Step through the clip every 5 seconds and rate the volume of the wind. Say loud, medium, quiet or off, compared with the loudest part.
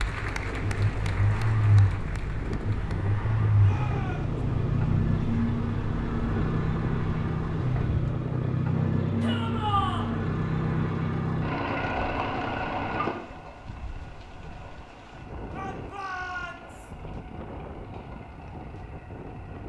loud, loud, quiet, medium.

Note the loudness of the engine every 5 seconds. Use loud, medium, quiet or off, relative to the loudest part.
loud, loud, loud, quiet.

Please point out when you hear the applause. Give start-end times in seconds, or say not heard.
0.0-3.0.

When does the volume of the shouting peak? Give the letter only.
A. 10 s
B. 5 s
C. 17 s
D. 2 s
A.